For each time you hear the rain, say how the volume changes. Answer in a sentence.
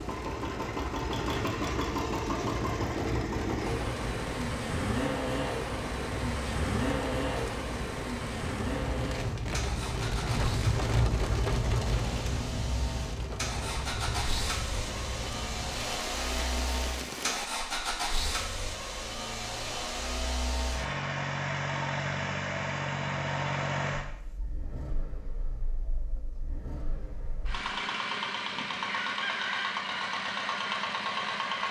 You can hear the rain from 0.0 to 17.5 s, getting louder then quieter.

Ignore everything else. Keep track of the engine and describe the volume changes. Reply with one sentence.
The volume of the engine stays about the same.